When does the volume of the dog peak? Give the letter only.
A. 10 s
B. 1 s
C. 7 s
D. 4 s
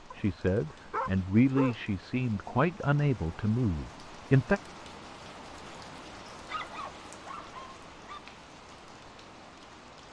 B.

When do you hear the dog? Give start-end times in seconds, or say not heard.
0.1-1.9, 6.3-8.2.